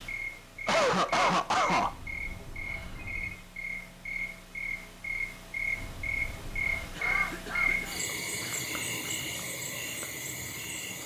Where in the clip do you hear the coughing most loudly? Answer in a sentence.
The loudest moment of the coughing is at 1 second.